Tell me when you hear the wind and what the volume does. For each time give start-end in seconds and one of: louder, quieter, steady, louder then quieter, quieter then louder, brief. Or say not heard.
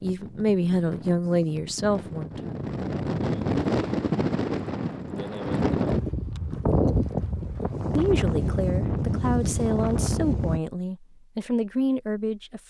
0.0-10.6 louder.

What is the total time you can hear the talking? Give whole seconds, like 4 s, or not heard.
7 s.